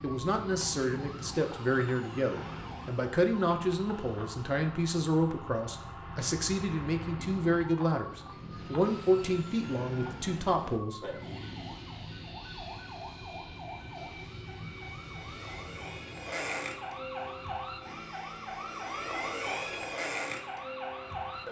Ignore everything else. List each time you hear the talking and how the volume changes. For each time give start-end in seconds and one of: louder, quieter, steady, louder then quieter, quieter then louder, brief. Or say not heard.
0.0-11.2 steady.